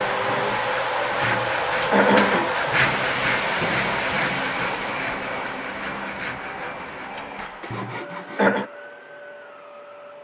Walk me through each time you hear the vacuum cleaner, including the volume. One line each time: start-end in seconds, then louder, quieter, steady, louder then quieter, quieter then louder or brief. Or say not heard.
0.0-10.1 quieter.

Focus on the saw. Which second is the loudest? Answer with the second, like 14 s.
3 s.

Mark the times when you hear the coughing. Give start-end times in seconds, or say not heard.
1.2-2.5, 7.7-8.7.